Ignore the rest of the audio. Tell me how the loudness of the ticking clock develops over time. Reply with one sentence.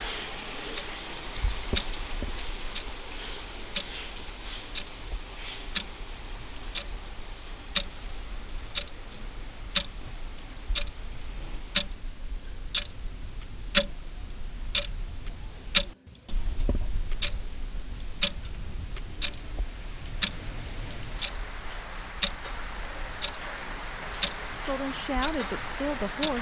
The volume of the ticking clock goes up, then down.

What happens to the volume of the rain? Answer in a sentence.
The volume of the rain goes down, then up.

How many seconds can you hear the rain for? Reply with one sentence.
The rain can be heard for 26 seconds in total.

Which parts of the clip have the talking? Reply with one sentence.
The talking can be heard from 24.6 to 26.3 s.